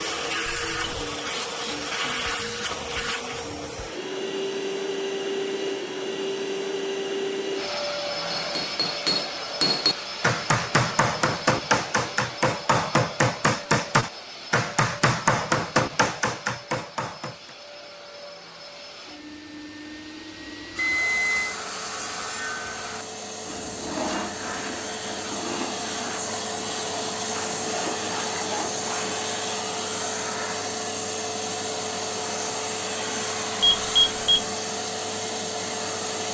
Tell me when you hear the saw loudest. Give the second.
24 s.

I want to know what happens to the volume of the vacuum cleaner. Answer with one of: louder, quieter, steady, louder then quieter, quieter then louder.
quieter then louder.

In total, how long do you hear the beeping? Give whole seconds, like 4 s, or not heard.
2 s.